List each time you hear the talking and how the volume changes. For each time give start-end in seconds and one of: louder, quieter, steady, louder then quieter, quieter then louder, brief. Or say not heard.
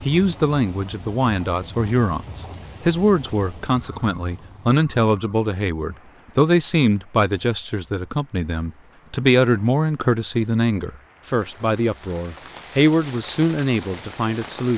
0.0-14.7 steady.